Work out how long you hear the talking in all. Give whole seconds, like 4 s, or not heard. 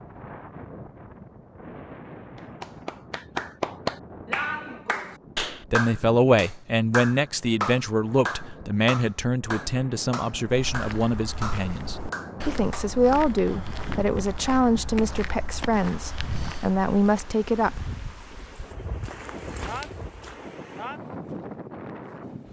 12 s.